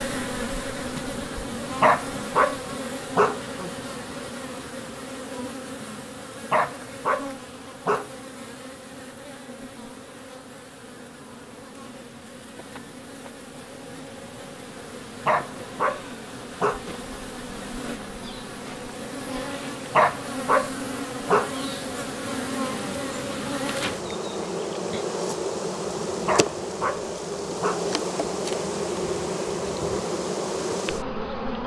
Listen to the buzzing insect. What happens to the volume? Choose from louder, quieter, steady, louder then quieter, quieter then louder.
quieter then louder.